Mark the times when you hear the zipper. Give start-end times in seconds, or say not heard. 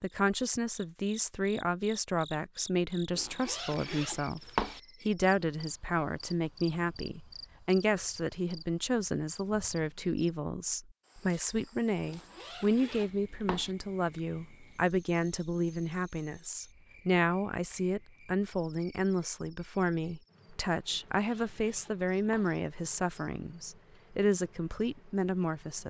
3.1-4.8, 12.1-13.8, 20.9-22.6.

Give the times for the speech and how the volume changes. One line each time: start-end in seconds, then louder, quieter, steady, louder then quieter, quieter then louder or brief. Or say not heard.
0.0-25.8 steady.